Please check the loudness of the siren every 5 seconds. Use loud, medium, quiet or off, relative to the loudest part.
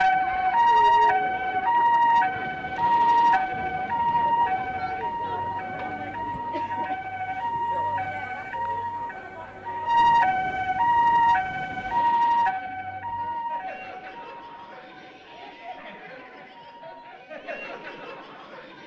loud, medium, loud, quiet.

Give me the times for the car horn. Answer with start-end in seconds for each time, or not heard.
not heard.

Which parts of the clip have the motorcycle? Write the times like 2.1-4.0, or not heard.
not heard.